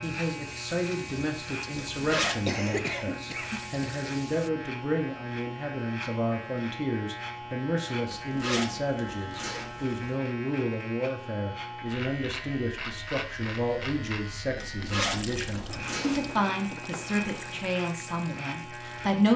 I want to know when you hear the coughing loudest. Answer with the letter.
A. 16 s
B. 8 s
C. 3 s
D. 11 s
C.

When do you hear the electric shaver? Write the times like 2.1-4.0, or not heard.
0.0-19.3.